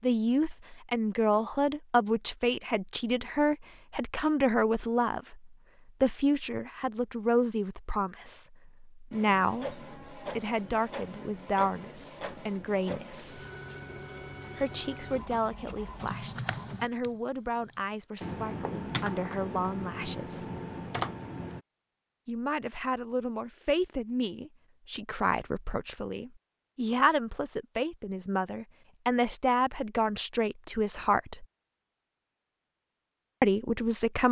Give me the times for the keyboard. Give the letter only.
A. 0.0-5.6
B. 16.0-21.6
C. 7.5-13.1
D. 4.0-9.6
B.